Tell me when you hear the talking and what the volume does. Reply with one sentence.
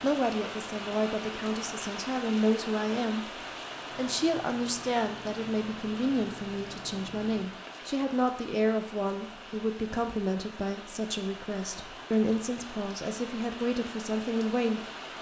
The talking can be heard from 0.0 to 14.8 s, at a steady volume.